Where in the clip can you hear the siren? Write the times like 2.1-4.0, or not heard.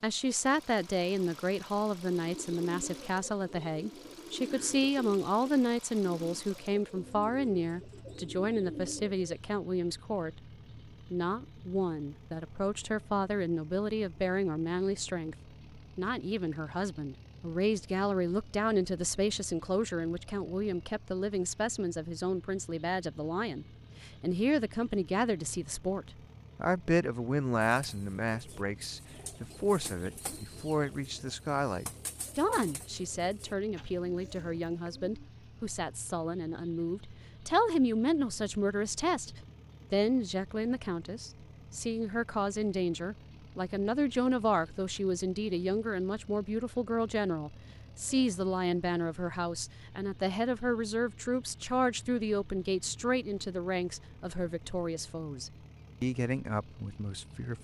not heard.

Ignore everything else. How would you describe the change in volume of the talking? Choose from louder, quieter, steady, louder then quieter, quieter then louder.
steady.